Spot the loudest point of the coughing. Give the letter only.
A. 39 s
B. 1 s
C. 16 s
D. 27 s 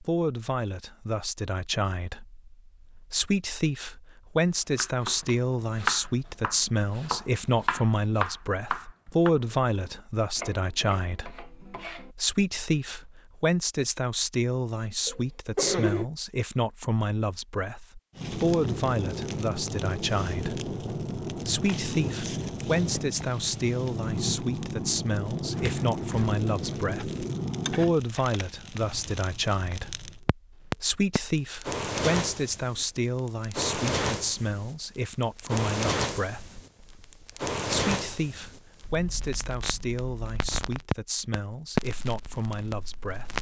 C.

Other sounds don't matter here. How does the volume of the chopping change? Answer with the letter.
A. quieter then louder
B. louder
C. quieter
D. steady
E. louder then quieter
C.